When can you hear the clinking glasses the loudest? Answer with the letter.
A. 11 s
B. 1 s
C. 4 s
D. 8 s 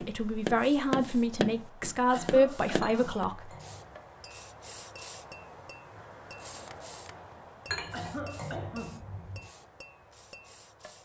D.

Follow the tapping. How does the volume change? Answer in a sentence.
The loudness of the tapping goes down.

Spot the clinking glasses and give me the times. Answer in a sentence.
The clinking glasses can be heard from 2.8 to 3.9 s and from 7.7 to 9.4 s.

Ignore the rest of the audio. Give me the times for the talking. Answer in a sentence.
You can hear the talking from 0.0 to 3.5 s.